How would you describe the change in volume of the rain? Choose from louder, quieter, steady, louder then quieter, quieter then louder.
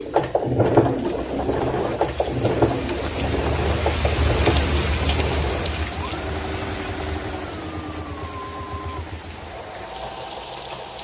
louder then quieter.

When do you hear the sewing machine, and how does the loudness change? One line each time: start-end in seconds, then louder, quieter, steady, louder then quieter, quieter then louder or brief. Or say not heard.
0.0-10.9 quieter.